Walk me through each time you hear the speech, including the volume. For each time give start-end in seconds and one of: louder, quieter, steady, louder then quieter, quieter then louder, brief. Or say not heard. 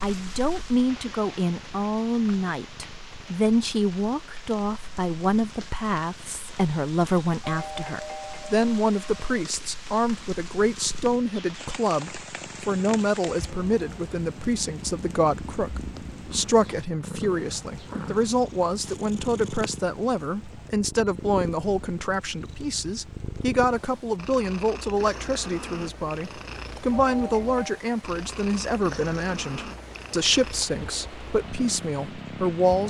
0.0-32.8 steady.